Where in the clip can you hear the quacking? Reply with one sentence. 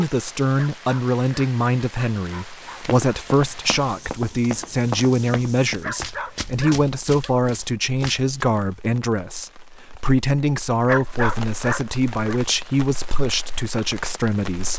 The quacking can't be heard in this clip.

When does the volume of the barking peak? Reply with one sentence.
The loudest moment of the barking is at 11 seconds.